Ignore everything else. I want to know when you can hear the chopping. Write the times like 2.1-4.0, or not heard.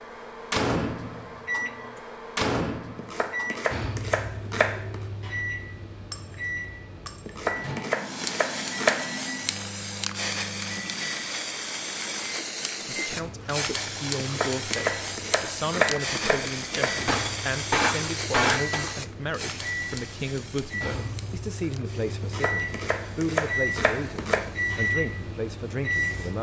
3.0-5.0, 7.2-9.2, 14.2-17.0, 22.2-24.5.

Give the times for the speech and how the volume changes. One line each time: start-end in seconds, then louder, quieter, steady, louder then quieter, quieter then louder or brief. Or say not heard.
12.9-26.3 steady.